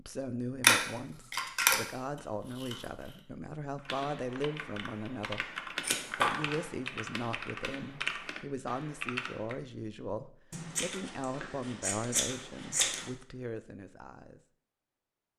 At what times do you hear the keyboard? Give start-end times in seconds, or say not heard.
3.8-9.6.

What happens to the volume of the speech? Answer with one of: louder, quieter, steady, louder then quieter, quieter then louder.
steady.